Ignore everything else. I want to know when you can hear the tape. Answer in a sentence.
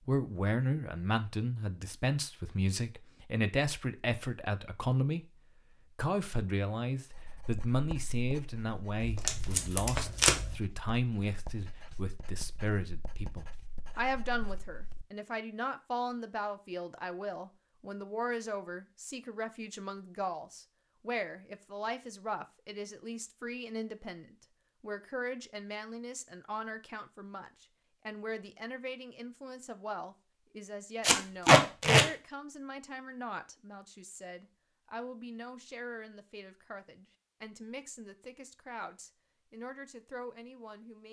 You can hear the tape from 9.0 to 10.6 s and from 31.0 to 32.0 s.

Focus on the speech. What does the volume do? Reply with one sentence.
The volume of the speech goes down.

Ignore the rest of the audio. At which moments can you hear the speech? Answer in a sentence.
You can hear the speech from 0.1 to 5.2 s and from 6.0 to 41.0 s.